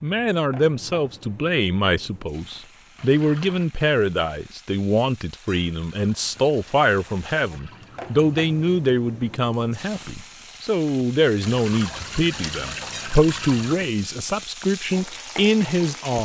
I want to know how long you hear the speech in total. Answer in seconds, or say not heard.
16 s.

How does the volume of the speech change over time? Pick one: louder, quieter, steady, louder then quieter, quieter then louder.
steady.